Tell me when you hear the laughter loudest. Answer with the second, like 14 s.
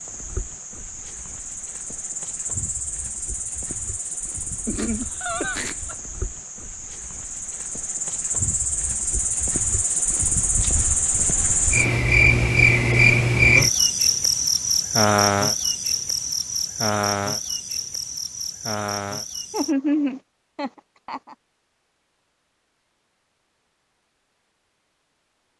20 s.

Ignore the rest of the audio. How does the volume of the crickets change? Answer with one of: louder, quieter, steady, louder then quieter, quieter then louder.
louder then quieter.